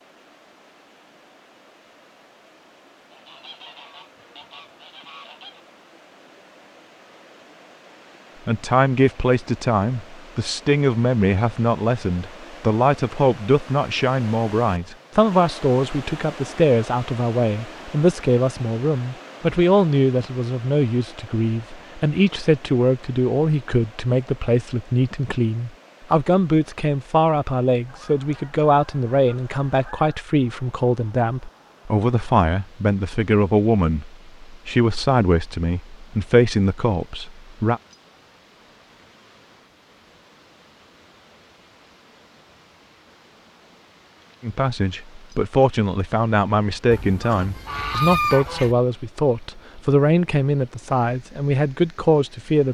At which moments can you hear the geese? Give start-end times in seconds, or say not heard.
3.1-5.7, 27.9-30.3, 46.9-48.8.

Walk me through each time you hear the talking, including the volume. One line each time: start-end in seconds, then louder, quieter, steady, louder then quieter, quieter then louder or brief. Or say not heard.
8.4-37.8 steady
44.4-52.6 steady.